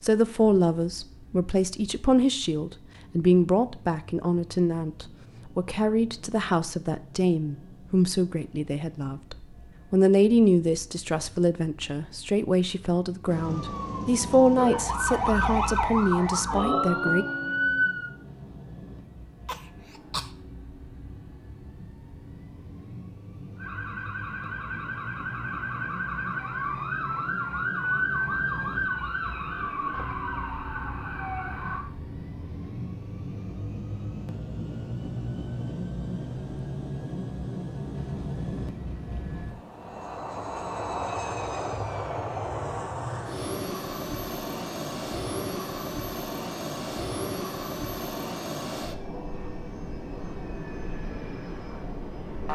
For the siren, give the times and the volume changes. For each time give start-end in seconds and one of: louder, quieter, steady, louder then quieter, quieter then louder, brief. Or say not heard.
13.2-18.1 louder
23.6-31.9 louder then quieter.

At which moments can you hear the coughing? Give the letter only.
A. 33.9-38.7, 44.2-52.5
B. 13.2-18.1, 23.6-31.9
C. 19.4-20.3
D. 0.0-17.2
C.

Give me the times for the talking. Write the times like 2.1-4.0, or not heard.
0.0-17.2.